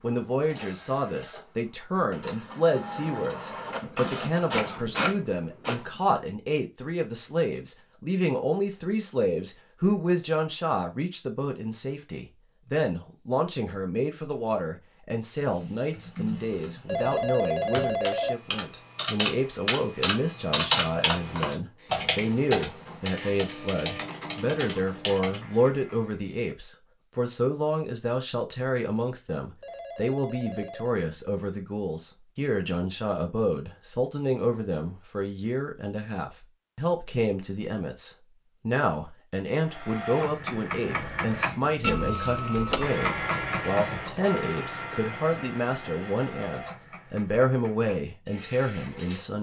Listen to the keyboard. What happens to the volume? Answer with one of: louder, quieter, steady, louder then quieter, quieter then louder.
louder then quieter.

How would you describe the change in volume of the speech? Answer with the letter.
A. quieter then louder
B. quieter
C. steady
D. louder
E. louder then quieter
C.